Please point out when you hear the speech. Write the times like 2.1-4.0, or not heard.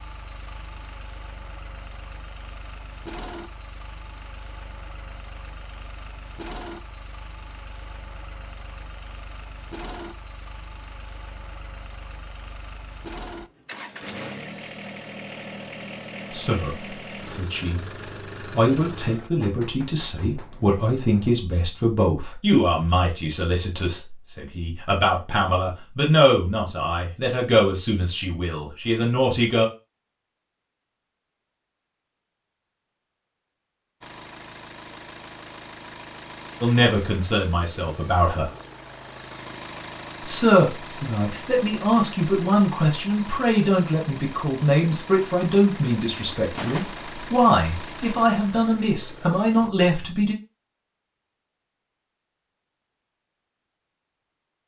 16.3-29.6, 36.6-38.5, 40.2-50.4.